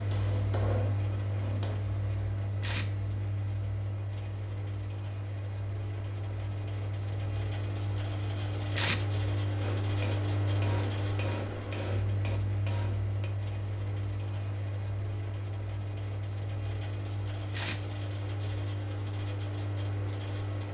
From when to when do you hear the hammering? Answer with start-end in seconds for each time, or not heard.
0.0-1.8, 9.6-13.3.